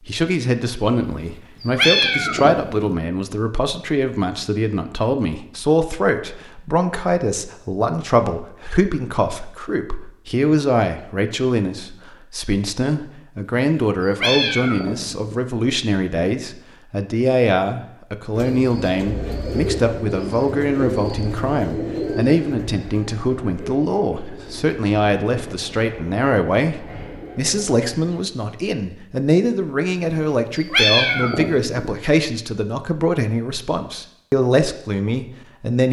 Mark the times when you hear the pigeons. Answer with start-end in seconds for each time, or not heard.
18.3-28.2.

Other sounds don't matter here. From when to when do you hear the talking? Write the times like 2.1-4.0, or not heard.
0.1-35.8.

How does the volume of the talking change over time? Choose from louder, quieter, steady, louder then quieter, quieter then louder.
steady.